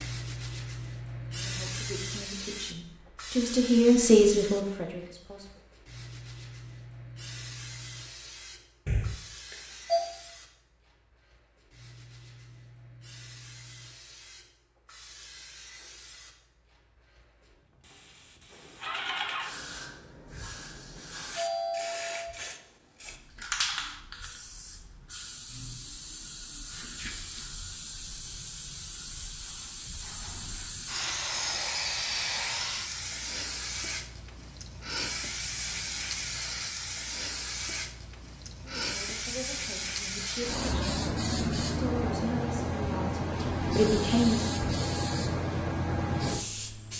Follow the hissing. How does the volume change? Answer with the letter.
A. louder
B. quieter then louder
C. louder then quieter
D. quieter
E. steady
B.